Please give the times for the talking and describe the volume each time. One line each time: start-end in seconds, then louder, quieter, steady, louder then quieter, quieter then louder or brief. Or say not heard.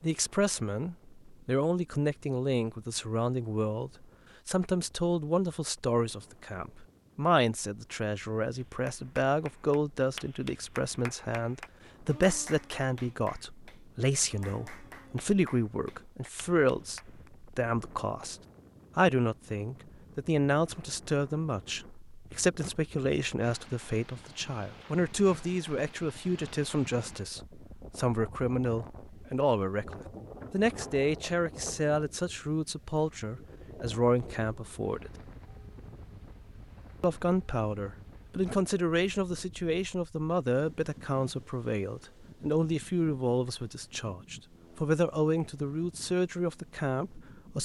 0.0-18.4 steady
18.9-35.1 steady
37.0-47.6 steady.